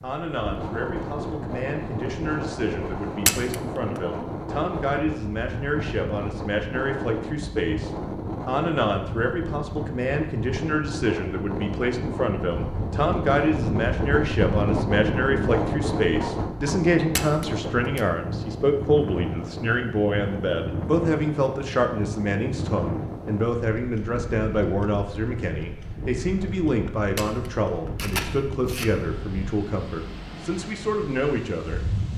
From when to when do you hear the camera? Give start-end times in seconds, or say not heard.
3.2-4.0, 17.1-18.0, 27.1-28.9.